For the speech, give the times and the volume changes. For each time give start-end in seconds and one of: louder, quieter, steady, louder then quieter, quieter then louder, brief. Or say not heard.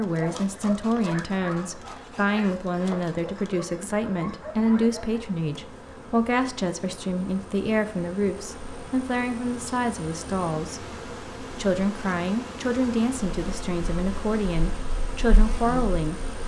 0.0-16.2 steady.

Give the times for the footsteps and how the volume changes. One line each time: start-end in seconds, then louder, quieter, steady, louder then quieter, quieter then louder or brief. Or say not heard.
not heard.